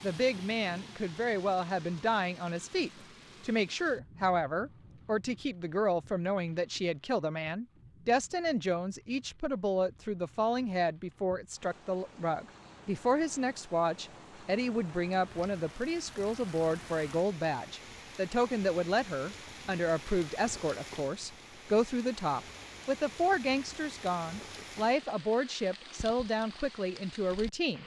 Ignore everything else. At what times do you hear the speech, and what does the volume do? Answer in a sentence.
The speech can be heard from 0.0 to 27.8 s, at a steady volume.